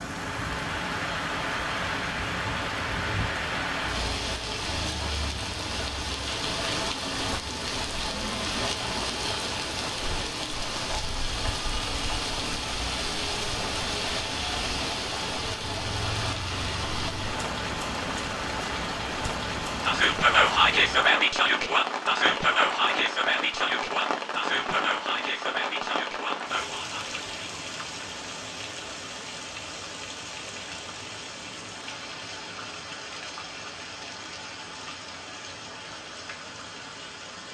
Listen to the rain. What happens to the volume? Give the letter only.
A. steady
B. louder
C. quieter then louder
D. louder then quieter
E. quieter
E.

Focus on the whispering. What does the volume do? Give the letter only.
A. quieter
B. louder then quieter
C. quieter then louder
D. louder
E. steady
A.